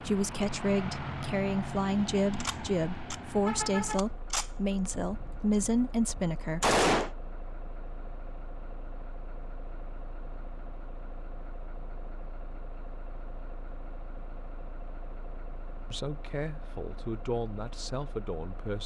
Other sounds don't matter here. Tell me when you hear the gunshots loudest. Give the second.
7 s.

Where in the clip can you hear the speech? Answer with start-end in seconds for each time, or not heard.
0.0-6.8, 15.9-18.8.